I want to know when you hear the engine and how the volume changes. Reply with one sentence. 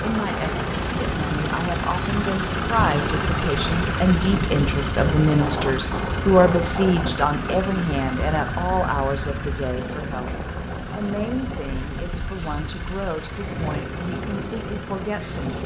The engine can be heard from 0.0 to 15.6 s, getting quieter.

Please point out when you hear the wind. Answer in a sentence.
The wind can be heard from 0.0 to 15.6 s.